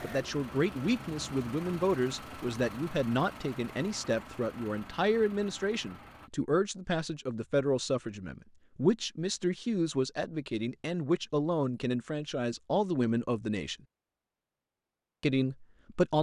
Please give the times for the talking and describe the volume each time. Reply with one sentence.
You can hear the talking from 0.0 to 13.8 s, at a steady volume; and briefly from 15.2 to 16.1 s.